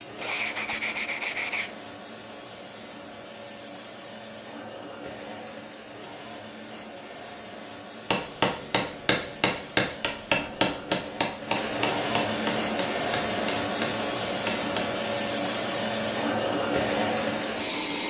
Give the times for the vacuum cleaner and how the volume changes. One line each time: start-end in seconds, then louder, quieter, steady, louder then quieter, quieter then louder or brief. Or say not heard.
0.0-18.0 louder.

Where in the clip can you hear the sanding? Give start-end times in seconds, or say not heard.
0.1-1.8.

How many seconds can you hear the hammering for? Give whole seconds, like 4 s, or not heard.
7 s.